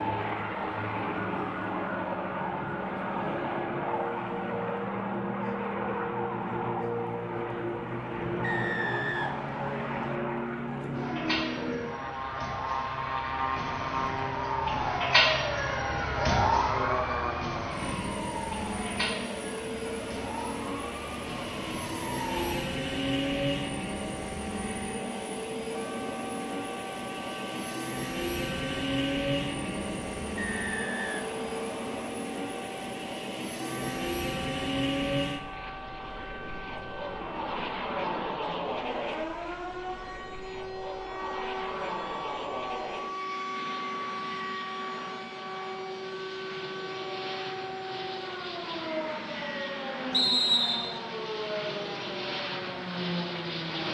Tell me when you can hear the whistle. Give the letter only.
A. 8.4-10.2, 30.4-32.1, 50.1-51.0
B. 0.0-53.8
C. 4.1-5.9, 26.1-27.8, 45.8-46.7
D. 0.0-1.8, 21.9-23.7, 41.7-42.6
A.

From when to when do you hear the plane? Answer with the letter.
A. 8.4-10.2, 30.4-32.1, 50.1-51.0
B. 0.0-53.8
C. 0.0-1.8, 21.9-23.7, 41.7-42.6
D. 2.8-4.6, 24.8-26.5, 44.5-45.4
B.